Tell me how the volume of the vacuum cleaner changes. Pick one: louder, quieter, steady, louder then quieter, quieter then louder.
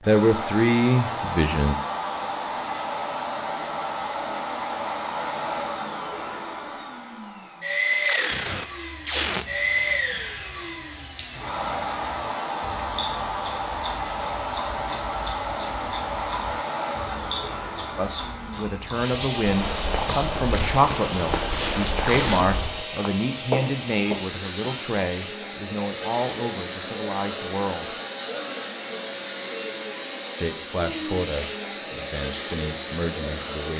steady.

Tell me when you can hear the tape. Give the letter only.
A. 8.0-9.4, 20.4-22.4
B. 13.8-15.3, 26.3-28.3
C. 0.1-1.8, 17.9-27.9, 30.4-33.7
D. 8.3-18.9
A.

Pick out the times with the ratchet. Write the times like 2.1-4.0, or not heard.
8.3-18.9.